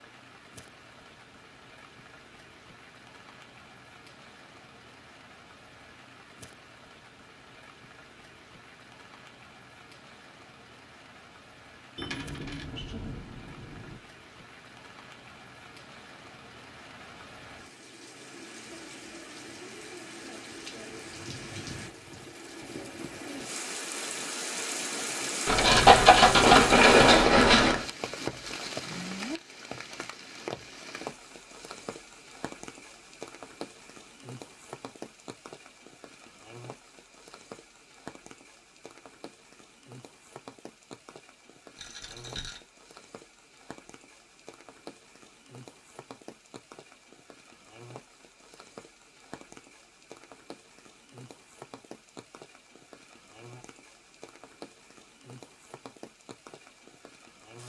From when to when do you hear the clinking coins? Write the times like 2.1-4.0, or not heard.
11.9-14.0, 25.4-27.9, 41.8-42.6.